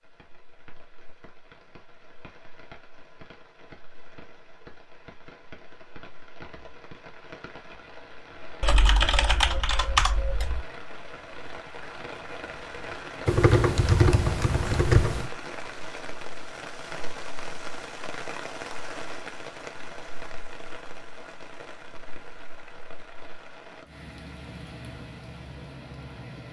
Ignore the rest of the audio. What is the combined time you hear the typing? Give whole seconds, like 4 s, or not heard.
4 s.